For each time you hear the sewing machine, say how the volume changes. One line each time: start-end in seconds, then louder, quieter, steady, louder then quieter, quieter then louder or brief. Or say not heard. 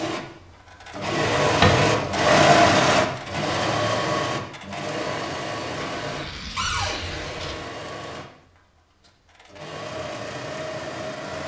0.0-11.4 quieter.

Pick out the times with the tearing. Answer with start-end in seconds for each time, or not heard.
6.0-7.6.